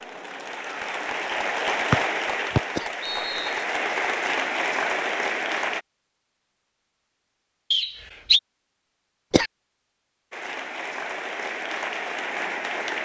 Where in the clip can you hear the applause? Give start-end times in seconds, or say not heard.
0.0-5.8, 10.3-13.0.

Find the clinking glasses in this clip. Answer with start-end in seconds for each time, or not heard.
not heard.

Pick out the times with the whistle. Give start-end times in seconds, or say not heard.
1.9-3.6, 7.7-8.4.